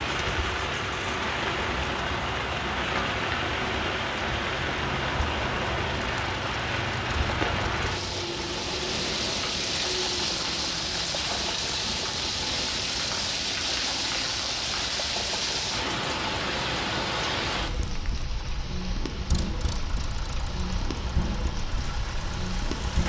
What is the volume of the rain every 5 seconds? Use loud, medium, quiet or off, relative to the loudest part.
loud, loud, loud, loud, medium.